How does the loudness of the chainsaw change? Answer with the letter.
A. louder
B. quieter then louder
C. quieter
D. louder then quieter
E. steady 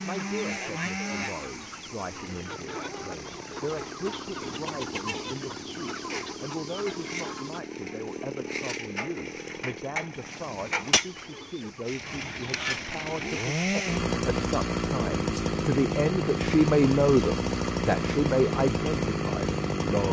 A.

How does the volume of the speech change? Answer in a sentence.
The loudness of the speech goes up.